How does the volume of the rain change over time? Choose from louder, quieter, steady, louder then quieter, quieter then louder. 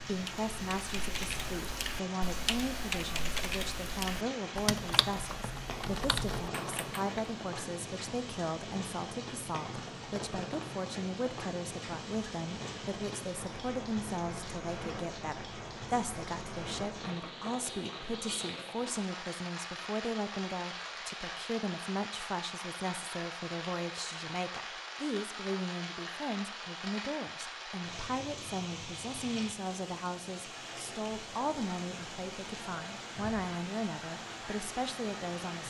steady.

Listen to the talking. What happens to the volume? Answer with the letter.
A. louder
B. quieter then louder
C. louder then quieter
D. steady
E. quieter
D.